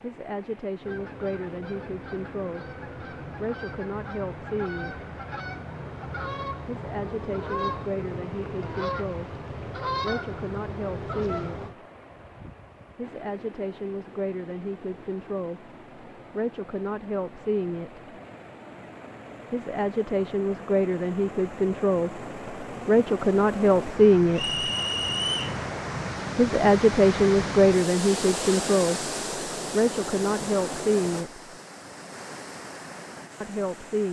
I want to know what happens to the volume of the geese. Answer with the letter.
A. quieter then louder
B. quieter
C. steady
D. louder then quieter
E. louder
E.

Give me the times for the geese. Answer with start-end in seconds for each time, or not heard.
0.8-11.8.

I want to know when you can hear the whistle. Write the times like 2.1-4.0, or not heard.
24.4-25.6.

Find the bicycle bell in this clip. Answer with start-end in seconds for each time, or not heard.
not heard.